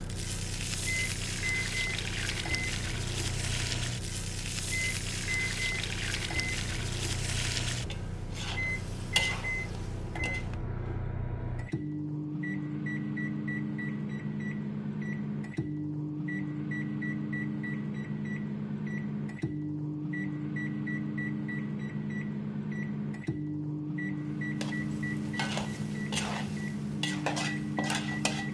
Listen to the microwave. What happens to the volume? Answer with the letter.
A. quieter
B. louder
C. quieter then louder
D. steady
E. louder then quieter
D.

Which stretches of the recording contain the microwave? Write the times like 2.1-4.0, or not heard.
0.0-28.5.